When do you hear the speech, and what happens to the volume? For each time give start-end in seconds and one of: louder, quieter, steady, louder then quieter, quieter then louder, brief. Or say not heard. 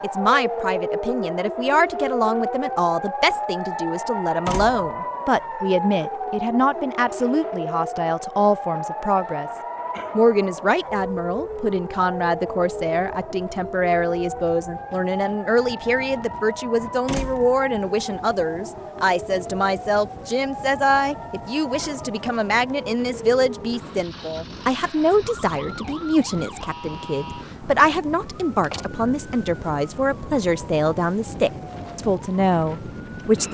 0.0-9.5 steady
10.2-33.4 steady.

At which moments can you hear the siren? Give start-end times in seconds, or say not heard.
0.0-33.4.